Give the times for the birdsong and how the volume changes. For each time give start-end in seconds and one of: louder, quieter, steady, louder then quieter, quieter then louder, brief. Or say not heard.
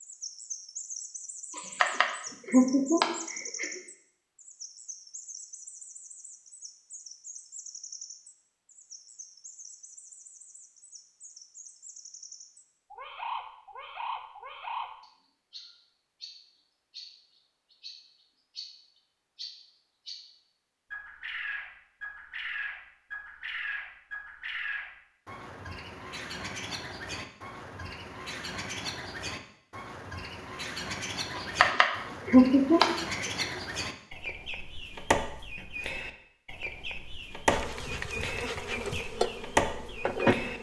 0.0-40.5 louder.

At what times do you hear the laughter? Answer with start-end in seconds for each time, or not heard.
1.6-3.8, 31.4-33.5.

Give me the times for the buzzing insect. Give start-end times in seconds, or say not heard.
37.5-40.5.